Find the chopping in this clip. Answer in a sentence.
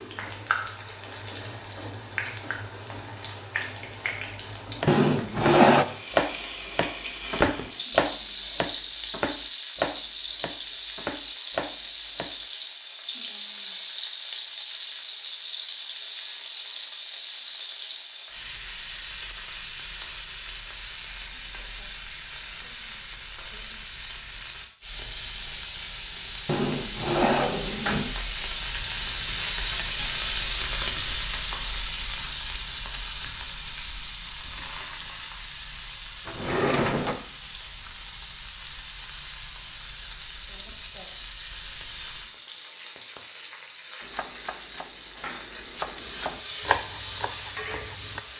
The chopping can be heard from 4.8 to 12.3 s and from 44.0 to 48.2 s.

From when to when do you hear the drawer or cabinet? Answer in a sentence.
The drawer or cabinet can be heard from 4.8 to 5.8 s, from 26.4 to 28.1 s and from 36.2 to 37.2 s.